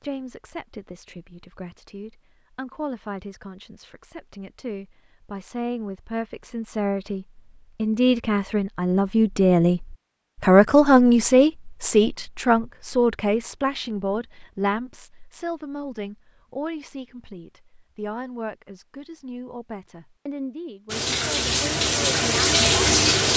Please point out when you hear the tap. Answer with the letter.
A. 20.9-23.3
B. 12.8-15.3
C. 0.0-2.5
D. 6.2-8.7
A.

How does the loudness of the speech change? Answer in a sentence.
The loudness of the speech goes up, then down.